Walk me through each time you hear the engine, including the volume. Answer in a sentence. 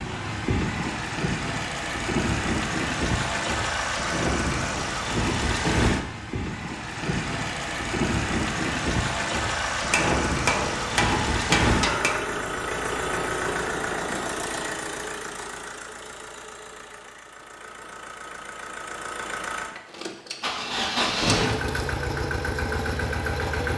The engine can be heard from 0.0 to 23.7 s, getting quieter then louder.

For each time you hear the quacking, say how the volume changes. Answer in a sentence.
You can't hear the quacking here.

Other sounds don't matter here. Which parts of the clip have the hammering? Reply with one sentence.
You can hear the hammering from 9.9 to 12.2 s.